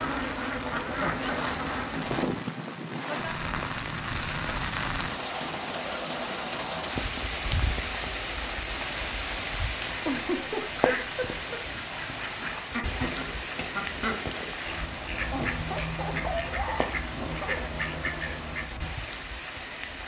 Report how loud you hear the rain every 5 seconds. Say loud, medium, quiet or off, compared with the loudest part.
loud, loud, loud, medium.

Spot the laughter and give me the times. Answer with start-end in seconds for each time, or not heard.
0.8-1.4, 10.1-11.6, 15.3-17.6.